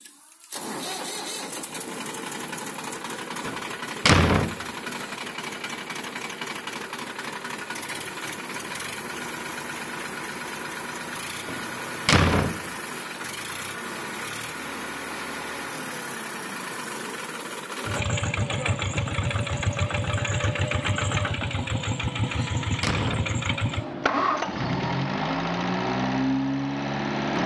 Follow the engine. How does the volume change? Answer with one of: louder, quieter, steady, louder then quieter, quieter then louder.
louder.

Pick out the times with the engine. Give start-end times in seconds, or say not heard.
0.0-27.4.